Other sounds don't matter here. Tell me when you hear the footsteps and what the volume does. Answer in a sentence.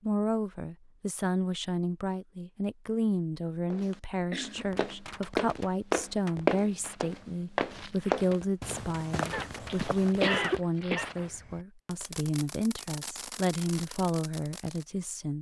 You can hear the footsteps from 3.7 to 10.6 s, getting louder then quieter.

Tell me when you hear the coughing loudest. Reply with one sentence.
The volume of the coughing peaks at 10 seconds.